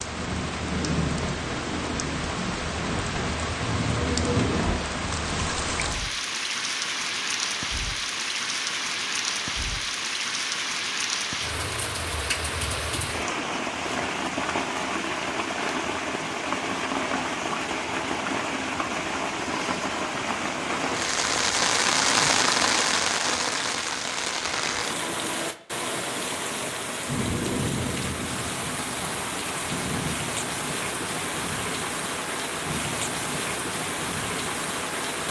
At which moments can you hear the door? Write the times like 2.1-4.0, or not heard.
3.5-4.8.